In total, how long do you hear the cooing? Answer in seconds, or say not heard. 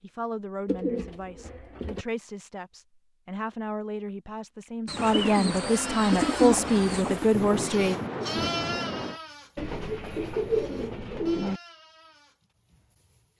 6 s.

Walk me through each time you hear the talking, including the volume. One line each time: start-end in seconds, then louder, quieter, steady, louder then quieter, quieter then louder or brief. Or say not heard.
0.0-8.0 louder.